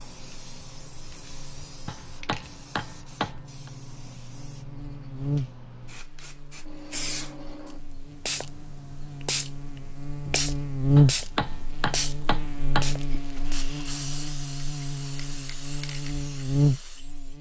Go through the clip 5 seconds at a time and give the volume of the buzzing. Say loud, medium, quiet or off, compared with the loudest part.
quiet, medium, loud, loud.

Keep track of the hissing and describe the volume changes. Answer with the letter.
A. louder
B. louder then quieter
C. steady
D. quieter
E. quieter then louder
B.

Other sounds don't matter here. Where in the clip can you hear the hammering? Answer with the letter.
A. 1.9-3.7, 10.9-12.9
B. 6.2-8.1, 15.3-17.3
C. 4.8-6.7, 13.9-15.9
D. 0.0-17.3
A.